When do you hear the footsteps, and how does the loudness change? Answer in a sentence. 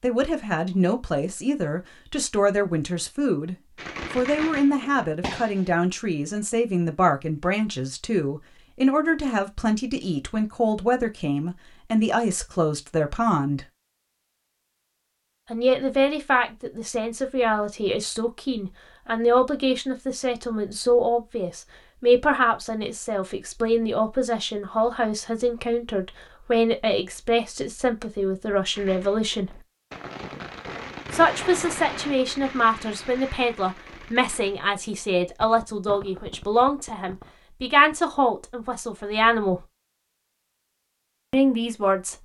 The footsteps can't be heard in this clip.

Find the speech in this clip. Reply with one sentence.
You can hear the speech from 0.0 to 3.5 s, from 4.2 to 13.7 s, from 15.5 to 29.6 s, from 31.1 to 39.6 s and from 41.3 to 42.1 s.